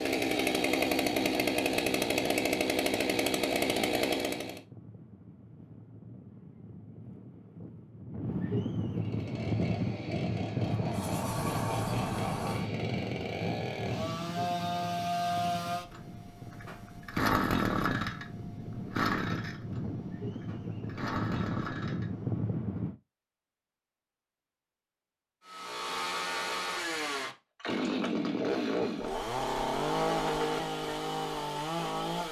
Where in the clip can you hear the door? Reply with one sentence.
The door can be heard from 10.6 to 12.7 s.